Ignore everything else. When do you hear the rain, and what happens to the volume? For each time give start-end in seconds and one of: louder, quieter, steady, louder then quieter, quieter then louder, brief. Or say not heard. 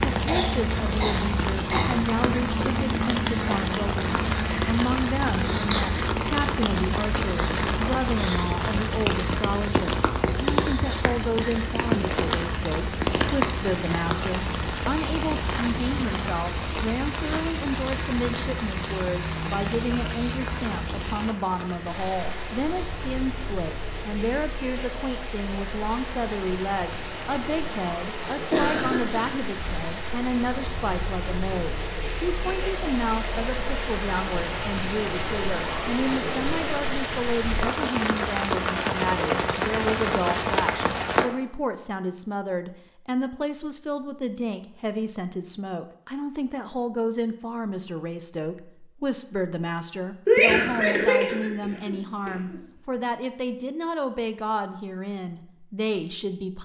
0.0-41.3 quieter then louder.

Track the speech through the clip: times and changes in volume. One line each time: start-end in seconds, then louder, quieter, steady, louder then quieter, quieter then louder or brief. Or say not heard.
0.0-56.5 steady.